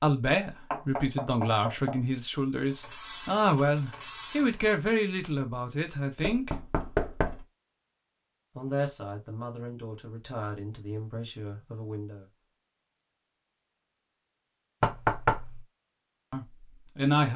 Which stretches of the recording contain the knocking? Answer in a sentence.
You can hear the knocking from 0.7 to 2.0 s, from 6.2 to 7.5 s and from 14.8 to 15.6 s.